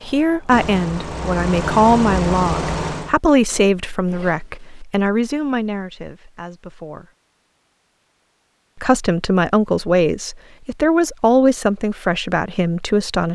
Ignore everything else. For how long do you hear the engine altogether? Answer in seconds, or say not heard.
3 s.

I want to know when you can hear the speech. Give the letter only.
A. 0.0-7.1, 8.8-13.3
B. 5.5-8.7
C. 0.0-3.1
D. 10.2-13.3
A.